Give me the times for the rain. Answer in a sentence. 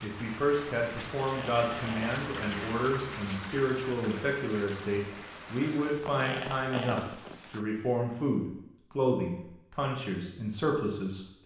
The rain can be heard from 0.0 to 7.7 s.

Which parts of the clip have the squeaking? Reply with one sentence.
The squeaking can be heard from 1.3 to 2.1 s and from 6.2 to 7.0 s.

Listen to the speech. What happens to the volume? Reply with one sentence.
The volume of the speech stays about the same.